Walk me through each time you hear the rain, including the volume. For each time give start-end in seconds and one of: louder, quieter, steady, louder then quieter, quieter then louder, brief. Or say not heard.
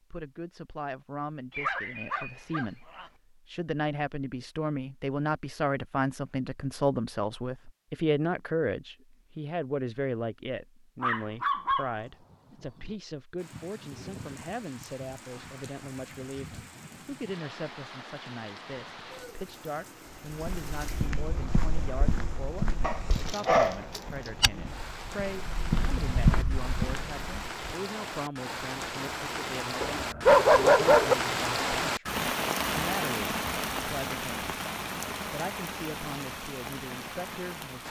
13.3-37.8 louder.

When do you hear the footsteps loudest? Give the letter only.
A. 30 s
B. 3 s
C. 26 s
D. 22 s
C.